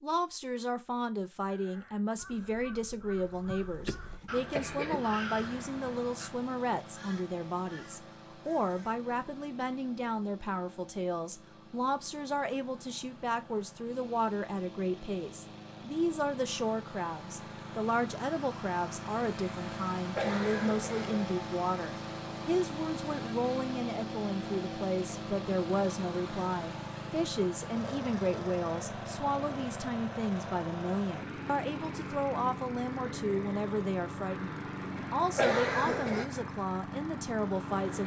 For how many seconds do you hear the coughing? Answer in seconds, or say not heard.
4 s.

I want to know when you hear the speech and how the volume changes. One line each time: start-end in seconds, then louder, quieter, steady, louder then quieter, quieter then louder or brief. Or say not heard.
0.0-38.0 steady.